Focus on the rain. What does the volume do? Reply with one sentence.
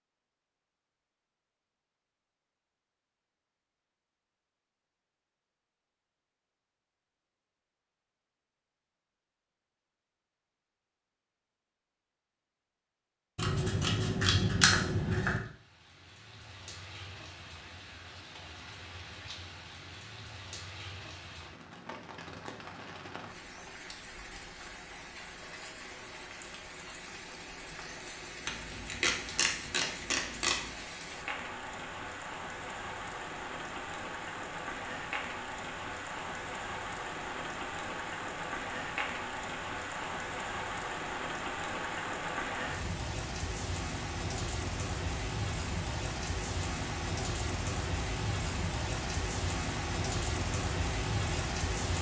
The loudness of the rain goes up.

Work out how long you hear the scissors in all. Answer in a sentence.
You can hear the scissors for 4 seconds altogether.